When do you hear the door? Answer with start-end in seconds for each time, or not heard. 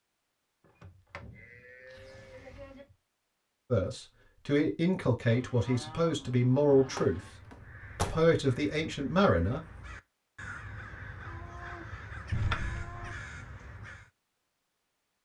0.6-3.0, 7.0-8.3, 12.3-13.0.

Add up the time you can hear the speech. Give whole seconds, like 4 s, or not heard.
5 s.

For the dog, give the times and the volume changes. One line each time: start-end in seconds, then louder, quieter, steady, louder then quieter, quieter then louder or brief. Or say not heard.
not heard.